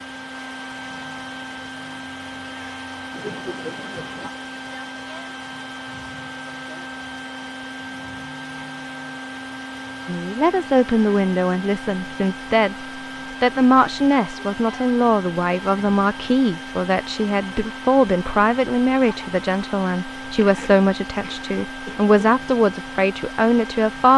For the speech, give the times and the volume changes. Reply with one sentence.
You can hear the speech briefly from 10.1 to 12.8 s; and from 13.4 to 24.1 s, at a steady volume.